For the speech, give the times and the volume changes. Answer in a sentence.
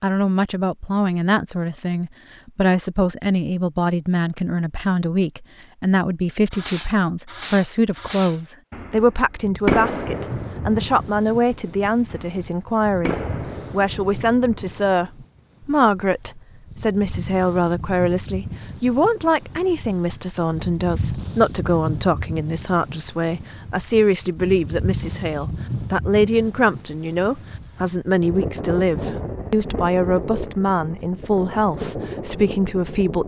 The speech can be heard from 0.0 to 33.2 s, at a steady volume.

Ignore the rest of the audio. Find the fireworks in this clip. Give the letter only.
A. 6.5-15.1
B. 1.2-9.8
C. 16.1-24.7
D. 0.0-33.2
A.